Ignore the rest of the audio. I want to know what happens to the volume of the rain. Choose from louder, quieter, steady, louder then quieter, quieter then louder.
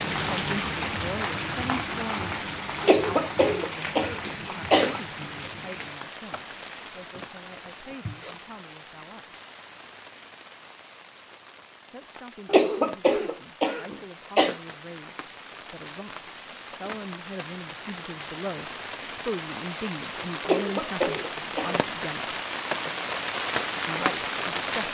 quieter then louder.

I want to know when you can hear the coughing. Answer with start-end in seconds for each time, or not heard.
2.8-5.0, 12.4-14.6, 20.4-21.9.